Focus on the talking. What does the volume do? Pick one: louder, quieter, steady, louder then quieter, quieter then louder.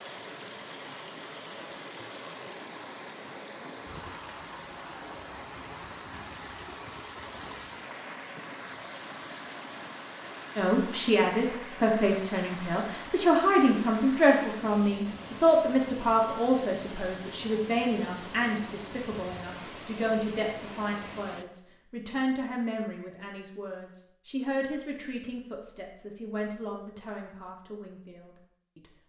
quieter.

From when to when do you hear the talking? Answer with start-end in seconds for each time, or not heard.
10.6-28.9.